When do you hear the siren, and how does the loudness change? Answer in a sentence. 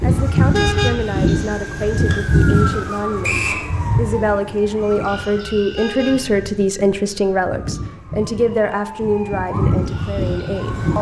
The siren can be heard from 0.0 to 10.9 s, getting quieter then louder.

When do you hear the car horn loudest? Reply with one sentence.
The volume of the car horn peaks at 1 second.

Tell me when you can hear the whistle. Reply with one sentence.
The whistle can be heard from 3.2 to 3.6 s.